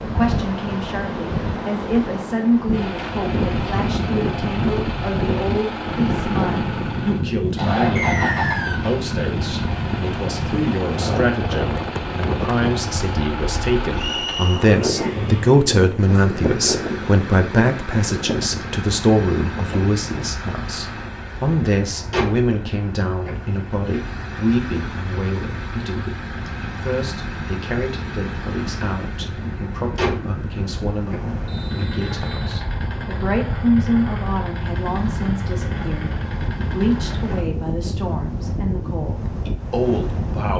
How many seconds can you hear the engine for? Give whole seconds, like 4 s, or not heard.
35 s.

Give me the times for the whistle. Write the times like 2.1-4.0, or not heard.
8.0-8.8, 13.9-14.7, 31.4-32.5.